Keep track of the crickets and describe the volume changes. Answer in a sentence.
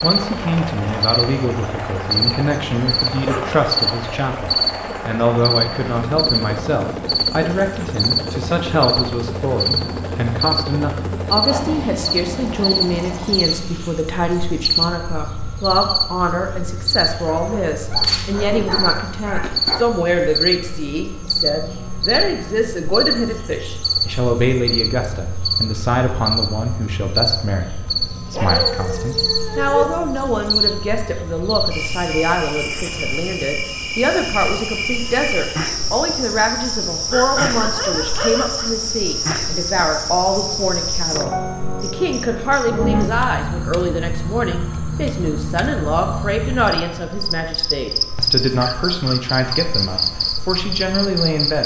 The volume of the crickets stays about the same.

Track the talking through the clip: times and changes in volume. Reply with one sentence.
The talking can be heard from 0.0 to 51.6 s, at a steady volume.